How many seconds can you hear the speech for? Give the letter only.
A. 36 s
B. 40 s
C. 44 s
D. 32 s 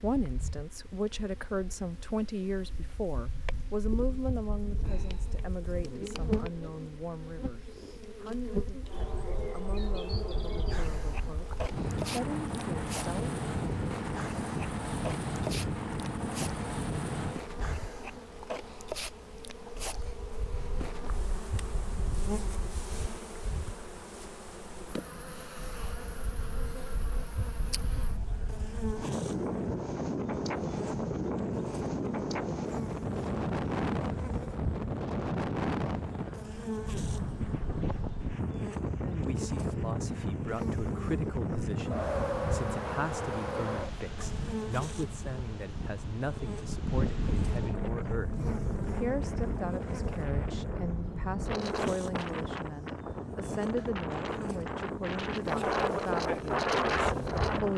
D.